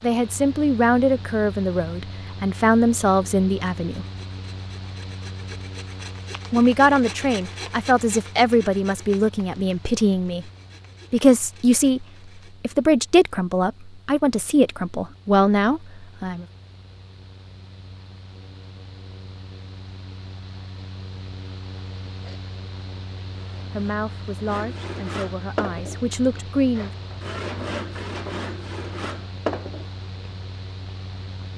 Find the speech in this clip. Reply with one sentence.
The speech can be heard from 0.0 to 4.0 s, from 6.5 to 10.4 s, from 11.1 to 16.4 s and from 23.7 to 26.9 s.